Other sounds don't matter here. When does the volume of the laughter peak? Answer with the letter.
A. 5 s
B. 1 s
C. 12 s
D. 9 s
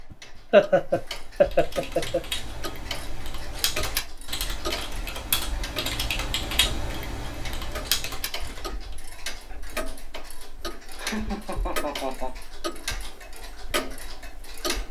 B.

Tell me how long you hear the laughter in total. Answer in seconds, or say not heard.
3 s.